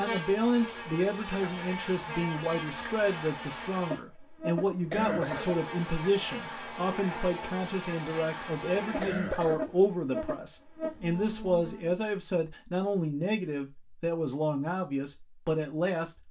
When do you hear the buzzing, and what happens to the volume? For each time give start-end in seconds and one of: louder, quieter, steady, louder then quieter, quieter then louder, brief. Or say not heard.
0.0-12.0 steady.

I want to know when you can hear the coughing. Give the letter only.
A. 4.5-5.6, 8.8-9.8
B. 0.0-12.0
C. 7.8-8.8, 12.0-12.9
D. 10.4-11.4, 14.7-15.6
A.